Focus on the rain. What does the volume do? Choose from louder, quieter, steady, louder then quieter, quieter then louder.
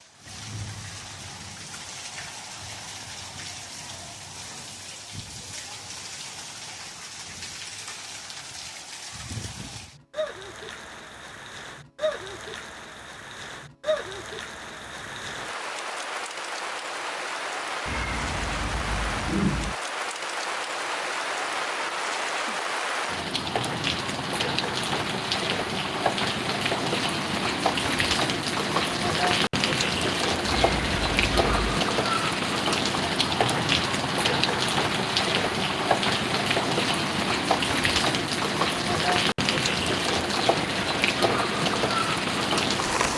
louder.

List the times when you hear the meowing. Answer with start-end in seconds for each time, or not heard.
17.9-19.8, 30.4-31.9.